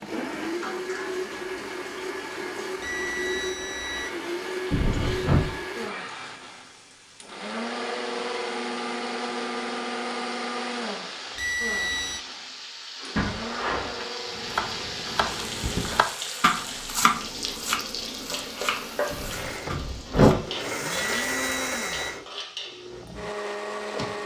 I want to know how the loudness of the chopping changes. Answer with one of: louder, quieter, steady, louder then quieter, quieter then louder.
louder then quieter.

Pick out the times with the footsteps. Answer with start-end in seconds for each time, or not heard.
not heard.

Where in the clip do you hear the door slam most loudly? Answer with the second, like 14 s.
20 s.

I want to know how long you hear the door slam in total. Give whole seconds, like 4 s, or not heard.
3 s.